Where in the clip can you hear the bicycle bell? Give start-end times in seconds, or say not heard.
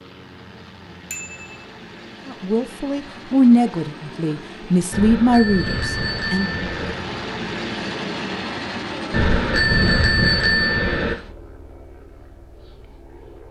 1.1-1.6, 4.9-7.0, 9.1-11.2.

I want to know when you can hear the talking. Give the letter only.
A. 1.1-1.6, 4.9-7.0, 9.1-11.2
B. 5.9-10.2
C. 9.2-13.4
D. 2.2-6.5
D.